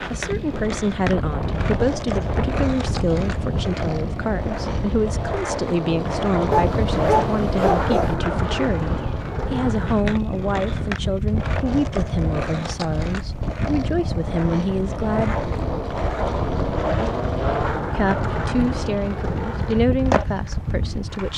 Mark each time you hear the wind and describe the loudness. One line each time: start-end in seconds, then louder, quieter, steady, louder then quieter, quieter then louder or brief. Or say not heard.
0.0-21.3 steady.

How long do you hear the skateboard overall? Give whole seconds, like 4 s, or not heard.
21 s.